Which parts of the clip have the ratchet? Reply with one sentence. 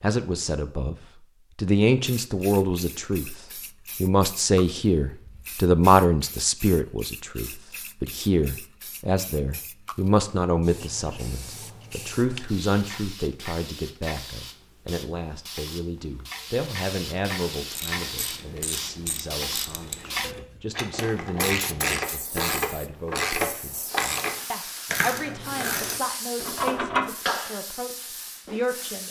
The ratchet can be heard from 17.7 to 27.1 s.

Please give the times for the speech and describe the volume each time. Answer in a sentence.
The speech can be heard briefly from 0.0 to 0.9 s; and from 1.6 to 29.0 s, getting quieter.